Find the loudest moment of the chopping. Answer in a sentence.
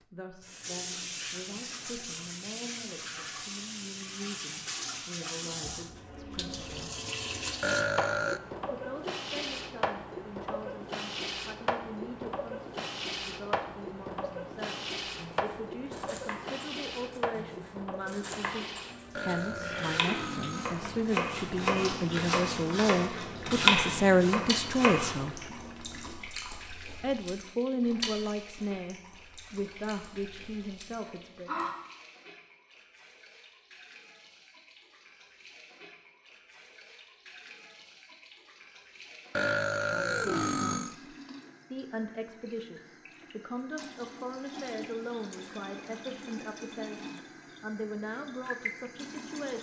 The loudest moment of the chopping is at 24 seconds.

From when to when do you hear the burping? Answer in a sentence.
You can hear the burping from 7.6 to 8.4 s, from 19.1 to 20.8 s and from 39.3 to 41.0 s.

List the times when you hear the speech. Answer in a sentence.
You can hear the speech from 0.0 to 7.0 s, from 8.7 to 25.5 s, from 27.0 to 31.5 s and from 39.8 to 49.5 s.